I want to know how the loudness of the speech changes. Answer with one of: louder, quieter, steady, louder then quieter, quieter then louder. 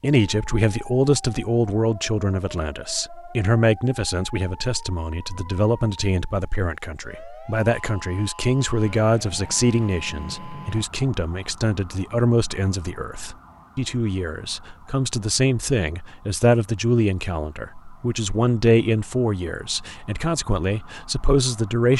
steady.